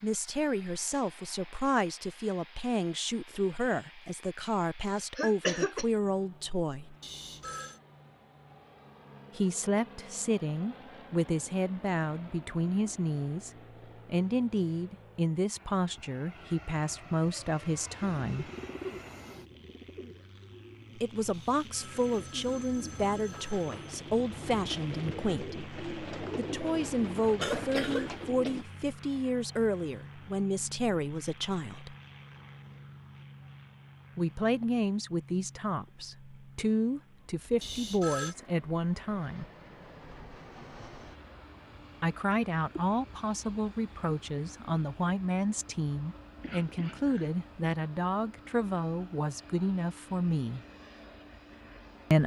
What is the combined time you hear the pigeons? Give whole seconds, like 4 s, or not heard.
11 s.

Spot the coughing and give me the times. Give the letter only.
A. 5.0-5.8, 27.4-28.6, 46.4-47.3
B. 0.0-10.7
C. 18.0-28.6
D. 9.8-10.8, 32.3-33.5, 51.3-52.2
A.